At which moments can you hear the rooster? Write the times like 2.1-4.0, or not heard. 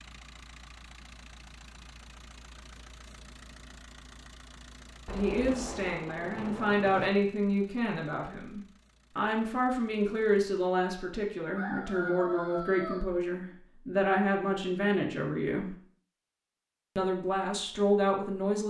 11.6-13.1.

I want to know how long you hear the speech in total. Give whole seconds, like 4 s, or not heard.
12 s.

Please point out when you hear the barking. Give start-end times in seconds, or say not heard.
not heard.